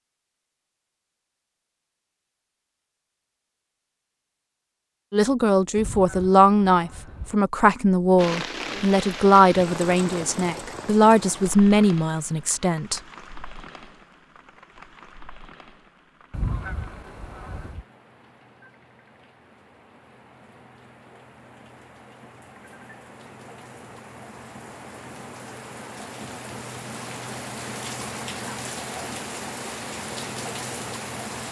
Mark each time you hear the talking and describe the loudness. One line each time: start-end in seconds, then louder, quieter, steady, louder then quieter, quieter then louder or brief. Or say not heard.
5.1-13.0 steady.